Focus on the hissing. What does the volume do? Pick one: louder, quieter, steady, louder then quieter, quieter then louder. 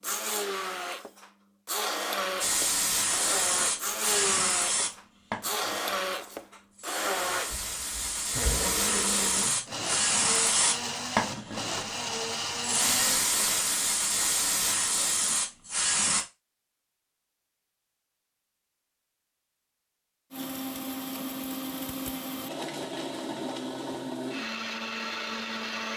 quieter then louder.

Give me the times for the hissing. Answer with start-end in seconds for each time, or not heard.
2.4-16.2.